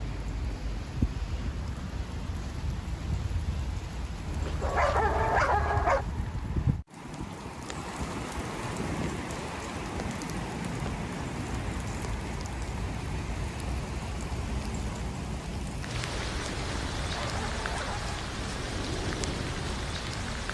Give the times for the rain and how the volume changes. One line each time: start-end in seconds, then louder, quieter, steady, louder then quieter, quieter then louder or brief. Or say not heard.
0.0-20.4 steady.